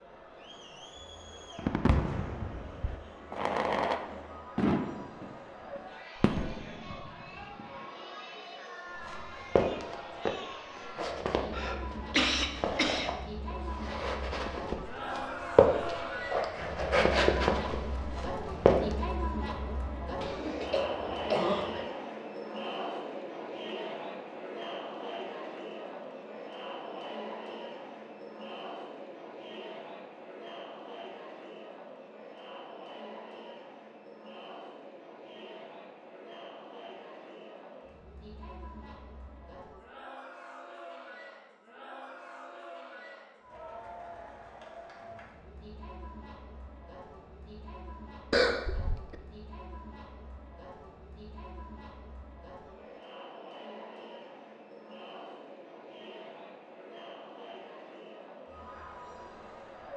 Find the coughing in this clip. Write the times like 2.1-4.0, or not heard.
11.5-13.2, 20.2-21.9, 48.3-49.1.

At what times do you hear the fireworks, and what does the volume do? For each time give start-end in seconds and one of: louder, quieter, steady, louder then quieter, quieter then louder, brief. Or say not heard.
1.6-7.8 louder then quieter.